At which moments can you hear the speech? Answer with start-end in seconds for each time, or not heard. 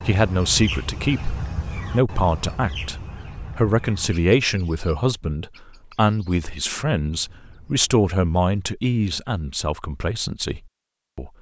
0.1-11.3.